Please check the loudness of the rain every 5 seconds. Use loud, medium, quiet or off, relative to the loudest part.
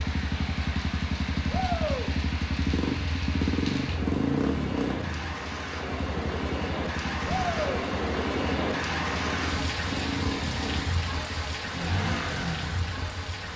medium, loud, loud.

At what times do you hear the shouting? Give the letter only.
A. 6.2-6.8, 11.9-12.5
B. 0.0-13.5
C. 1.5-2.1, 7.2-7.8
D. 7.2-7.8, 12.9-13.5
C.